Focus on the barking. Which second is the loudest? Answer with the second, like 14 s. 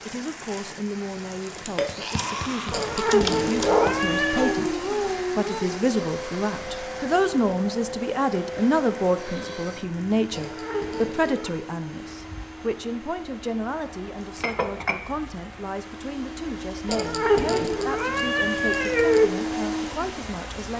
4 s.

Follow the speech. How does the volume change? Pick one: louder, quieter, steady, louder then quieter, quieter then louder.
louder then quieter.